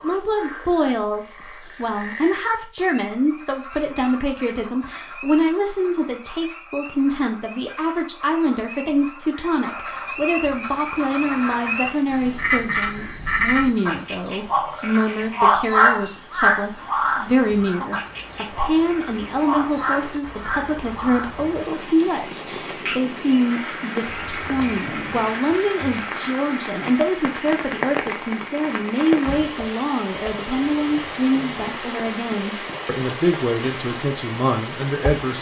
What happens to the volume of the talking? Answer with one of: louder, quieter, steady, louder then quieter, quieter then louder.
steady.